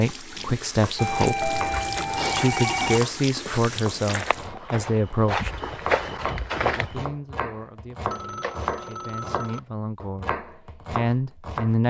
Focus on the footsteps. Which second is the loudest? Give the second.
6 s.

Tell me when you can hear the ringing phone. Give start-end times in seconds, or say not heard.
0.9-3.0, 8.1-9.6.